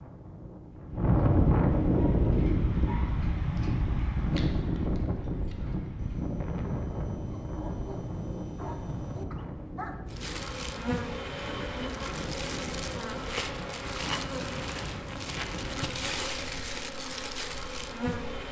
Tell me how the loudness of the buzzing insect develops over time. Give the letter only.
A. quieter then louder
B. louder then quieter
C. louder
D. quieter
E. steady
E.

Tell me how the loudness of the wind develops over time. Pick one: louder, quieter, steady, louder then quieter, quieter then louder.
quieter.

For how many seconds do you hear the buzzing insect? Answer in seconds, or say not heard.
8 s.